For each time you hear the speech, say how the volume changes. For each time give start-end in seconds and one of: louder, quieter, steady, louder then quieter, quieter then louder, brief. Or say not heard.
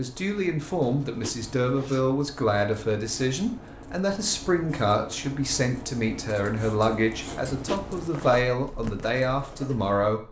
0.0-10.2 steady.